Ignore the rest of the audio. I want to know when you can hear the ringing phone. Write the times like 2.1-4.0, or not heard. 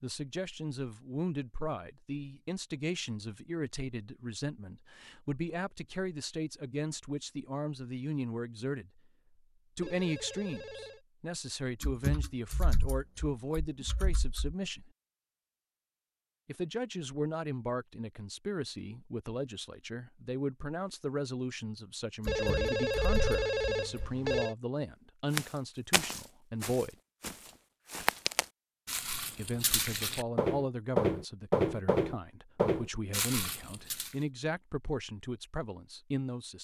9.8-11.0, 22.2-24.6.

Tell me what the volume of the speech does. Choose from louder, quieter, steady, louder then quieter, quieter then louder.
steady.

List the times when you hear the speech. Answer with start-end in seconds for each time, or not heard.
0.0-9.0, 9.8-14.9, 16.4-26.9, 29.4-36.5.